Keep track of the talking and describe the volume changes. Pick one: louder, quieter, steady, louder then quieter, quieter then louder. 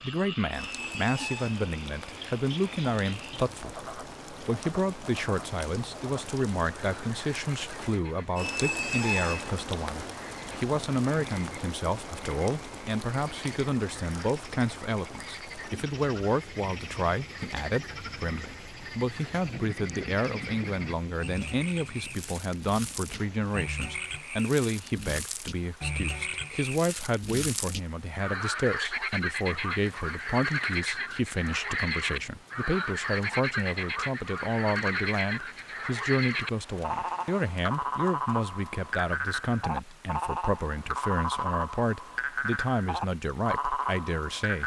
steady.